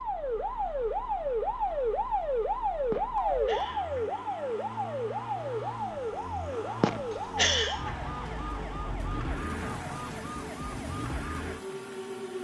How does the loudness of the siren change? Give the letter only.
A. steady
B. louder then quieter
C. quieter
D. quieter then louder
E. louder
C.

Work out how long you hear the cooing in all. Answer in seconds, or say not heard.
not heard.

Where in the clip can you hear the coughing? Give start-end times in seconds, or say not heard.
2.9-4.3, 6.8-7.9.